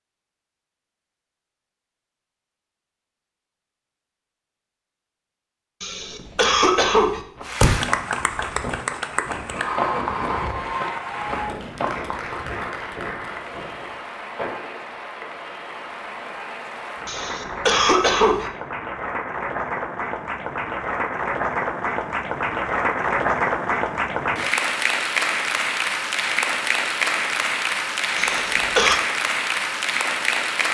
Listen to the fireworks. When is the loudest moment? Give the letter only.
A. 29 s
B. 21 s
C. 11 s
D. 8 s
D.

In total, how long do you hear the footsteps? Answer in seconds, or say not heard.
5 s.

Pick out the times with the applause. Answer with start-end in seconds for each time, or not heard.
7.4-30.7.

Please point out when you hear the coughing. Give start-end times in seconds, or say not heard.
5.8-7.2, 17.1-18.5, 28.1-29.0.